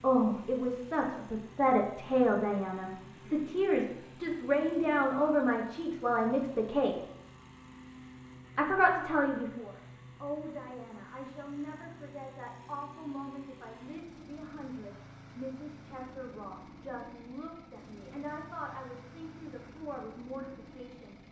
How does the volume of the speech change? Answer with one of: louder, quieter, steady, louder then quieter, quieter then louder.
quieter.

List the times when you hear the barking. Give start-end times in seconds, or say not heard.
not heard.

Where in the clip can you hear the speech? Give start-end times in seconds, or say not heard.
0.0-7.0, 8.6-21.1.